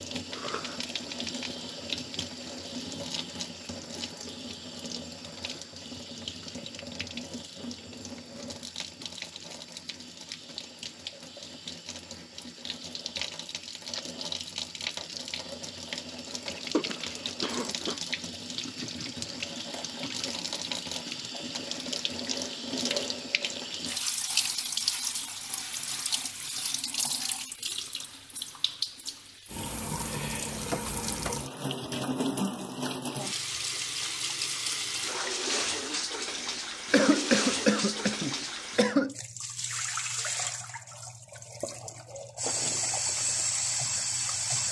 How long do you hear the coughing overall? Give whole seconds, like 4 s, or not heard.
4 s.